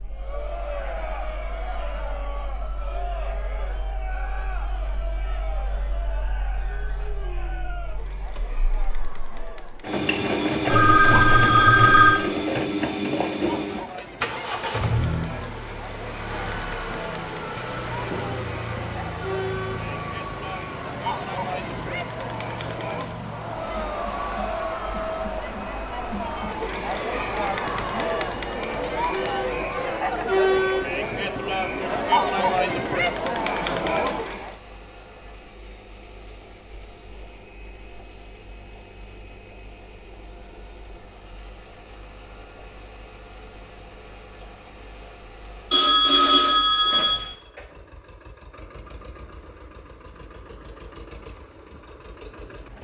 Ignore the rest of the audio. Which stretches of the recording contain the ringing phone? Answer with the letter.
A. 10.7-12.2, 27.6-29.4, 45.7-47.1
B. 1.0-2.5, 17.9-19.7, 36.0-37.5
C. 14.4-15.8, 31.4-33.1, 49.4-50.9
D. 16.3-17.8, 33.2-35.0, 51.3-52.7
A.